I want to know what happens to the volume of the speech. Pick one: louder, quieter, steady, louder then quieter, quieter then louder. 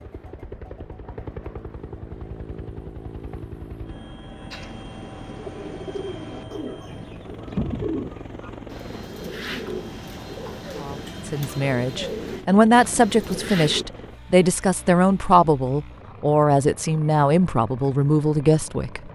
steady.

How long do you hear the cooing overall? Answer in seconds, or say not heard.
9 s.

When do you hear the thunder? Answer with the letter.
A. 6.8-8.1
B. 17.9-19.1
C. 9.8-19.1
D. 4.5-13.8
A.